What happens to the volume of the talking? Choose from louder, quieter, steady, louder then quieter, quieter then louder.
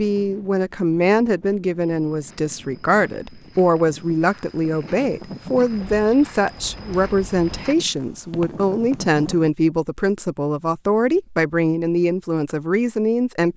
steady.